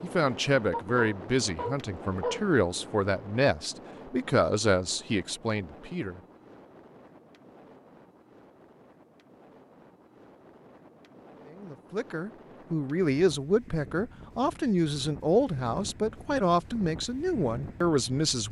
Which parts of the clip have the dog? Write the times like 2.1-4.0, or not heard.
0.7-2.5.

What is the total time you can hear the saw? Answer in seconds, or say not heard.
not heard.